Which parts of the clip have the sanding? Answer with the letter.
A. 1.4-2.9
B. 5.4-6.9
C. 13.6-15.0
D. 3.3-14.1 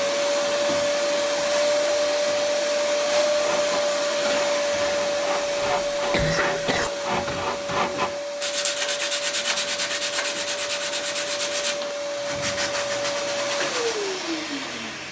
D.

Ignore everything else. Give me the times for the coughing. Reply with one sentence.
The coughing can be heard from 5.4 to 6.9 s.